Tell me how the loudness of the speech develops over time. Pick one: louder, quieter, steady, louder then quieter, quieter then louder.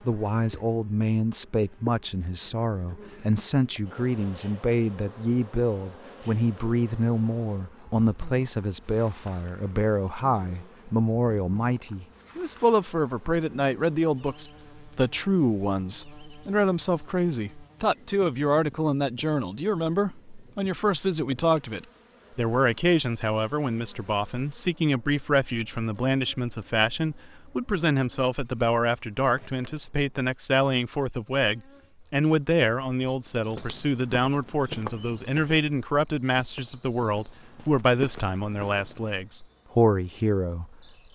steady.